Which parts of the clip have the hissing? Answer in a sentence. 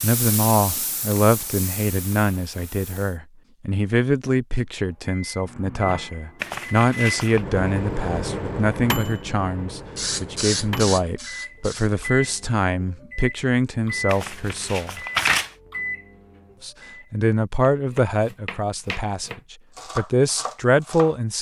You can hear the hissing from 0.0 to 3.1 s and from 9.9 to 11.9 s.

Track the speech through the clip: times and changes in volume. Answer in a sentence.
The speech can be heard from 0.0 to 15.0 s, at a steady volume; and from 16.6 to 21.3 s, getting quieter then louder.